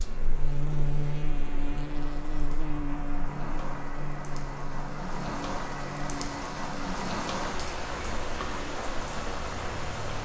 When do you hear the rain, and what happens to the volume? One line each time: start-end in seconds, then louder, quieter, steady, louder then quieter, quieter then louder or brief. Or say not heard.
0.0-10.1 louder.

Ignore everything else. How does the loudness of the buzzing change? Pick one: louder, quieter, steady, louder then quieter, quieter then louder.
quieter.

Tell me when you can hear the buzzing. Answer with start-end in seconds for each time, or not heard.
0.0-10.1.